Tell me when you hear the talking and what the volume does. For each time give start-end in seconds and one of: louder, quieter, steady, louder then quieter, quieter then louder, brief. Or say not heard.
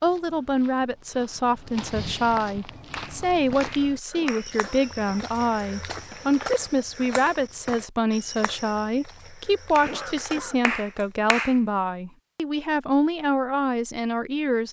0.0-14.6 steady.